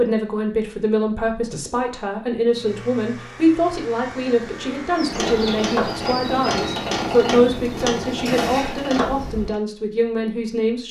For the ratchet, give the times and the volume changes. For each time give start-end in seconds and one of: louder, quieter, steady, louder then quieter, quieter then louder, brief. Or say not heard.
5.0-9.6 steady.